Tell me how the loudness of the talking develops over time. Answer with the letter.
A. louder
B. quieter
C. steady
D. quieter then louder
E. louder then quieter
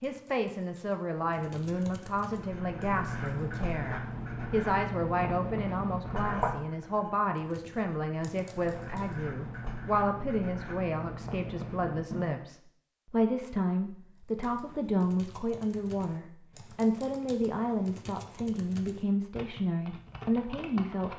C.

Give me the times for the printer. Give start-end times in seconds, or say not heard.
not heard.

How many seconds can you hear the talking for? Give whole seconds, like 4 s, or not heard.
21 s.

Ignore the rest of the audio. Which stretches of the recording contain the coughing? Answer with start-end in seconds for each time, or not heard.
not heard.